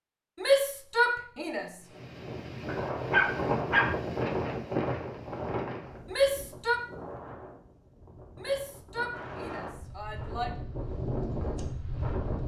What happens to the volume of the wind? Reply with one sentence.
The loudness of the wind goes down, then up.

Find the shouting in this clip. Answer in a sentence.
The shouting can be heard from 0.3 to 1.7 s, from 6.0 to 6.8 s and from 8.3 to 10.5 s.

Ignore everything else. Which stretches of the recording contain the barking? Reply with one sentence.
The barking can be heard from 2.6 to 4.0 s.